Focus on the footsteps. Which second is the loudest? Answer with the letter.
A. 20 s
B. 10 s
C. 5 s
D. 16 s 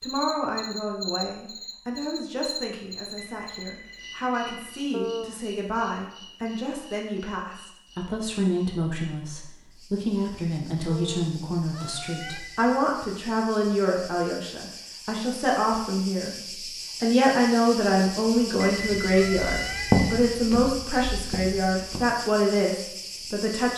A.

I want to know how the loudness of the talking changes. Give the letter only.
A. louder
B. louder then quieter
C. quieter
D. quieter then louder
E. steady
A.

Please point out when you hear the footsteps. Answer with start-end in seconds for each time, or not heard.
18.8-22.1.